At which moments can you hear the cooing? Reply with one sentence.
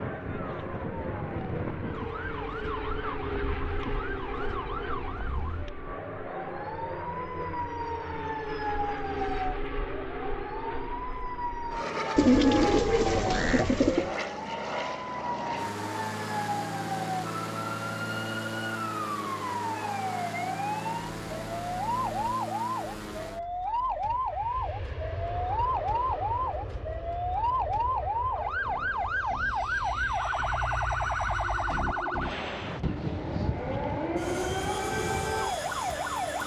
You can hear the cooing from 12.2 to 14.1 s.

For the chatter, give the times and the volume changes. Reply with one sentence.
The chatter can't be heard in this clip.